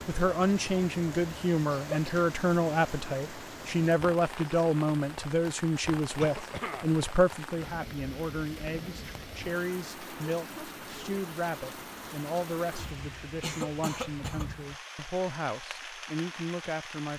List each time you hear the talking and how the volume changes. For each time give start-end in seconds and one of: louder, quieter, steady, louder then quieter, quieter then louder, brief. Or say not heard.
0.1-17.1 quieter.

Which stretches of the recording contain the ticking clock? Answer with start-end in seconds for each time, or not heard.
not heard.